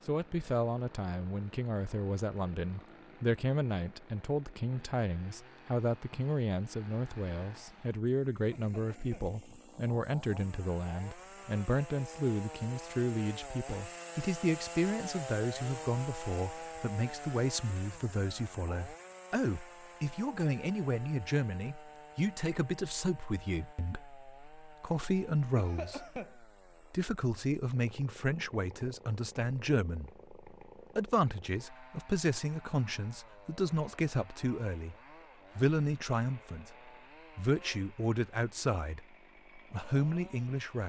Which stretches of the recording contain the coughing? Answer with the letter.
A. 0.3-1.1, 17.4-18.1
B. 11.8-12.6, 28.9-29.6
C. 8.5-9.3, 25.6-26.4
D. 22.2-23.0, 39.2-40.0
C.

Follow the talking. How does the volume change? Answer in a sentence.
The loudness of the talking stays about the same.